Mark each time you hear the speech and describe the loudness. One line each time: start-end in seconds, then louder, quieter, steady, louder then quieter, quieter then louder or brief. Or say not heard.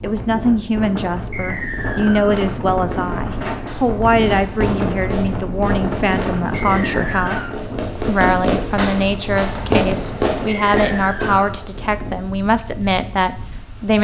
0.0-13.9 steady.